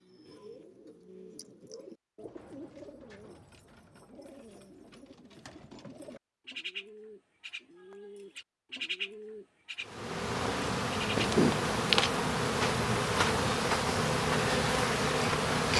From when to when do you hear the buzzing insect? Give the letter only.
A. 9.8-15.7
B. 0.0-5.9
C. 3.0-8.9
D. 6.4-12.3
A.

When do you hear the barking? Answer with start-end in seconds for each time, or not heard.
not heard.